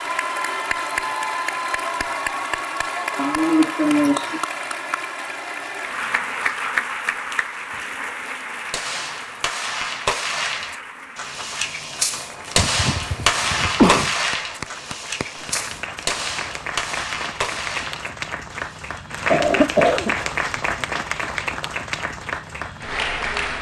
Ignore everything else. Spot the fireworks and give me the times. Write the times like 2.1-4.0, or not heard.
8.7-19.1.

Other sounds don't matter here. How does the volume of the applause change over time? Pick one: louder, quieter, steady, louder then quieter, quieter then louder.
quieter then louder.